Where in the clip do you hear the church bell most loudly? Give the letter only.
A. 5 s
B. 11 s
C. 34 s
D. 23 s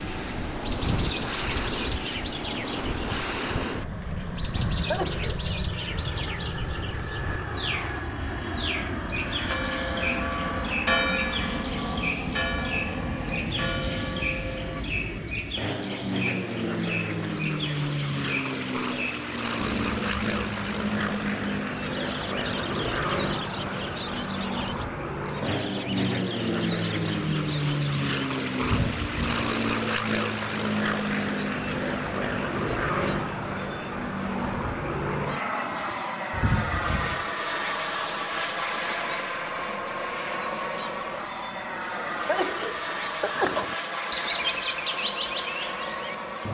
B.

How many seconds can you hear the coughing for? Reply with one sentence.
You can hear the coughing for 3 seconds altogether.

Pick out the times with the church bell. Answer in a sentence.
The church bell can be heard from 9.4 to 14.8 s.